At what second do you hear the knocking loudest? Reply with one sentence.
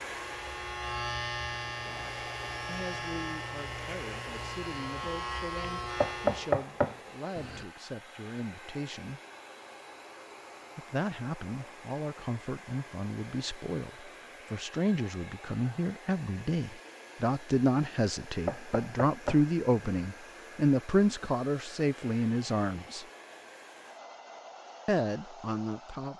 The loudest moment of the knocking is at 6 seconds.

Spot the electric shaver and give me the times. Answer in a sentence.
The electric shaver can be heard from 0.0 to 6.6 s.